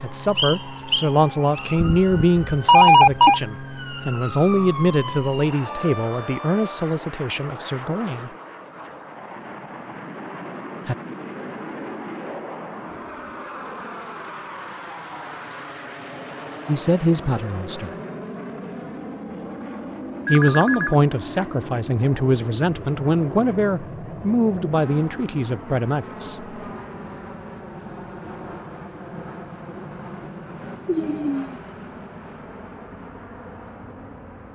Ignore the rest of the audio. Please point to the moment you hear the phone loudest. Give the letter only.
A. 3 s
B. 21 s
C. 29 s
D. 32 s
A.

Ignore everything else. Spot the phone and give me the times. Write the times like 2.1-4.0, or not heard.
1.8-3.4, 20.2-20.9, 30.9-31.6.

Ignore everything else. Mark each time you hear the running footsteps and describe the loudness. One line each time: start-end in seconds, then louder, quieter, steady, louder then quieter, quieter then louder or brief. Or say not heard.
not heard.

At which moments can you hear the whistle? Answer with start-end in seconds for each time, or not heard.
0.3-1.8.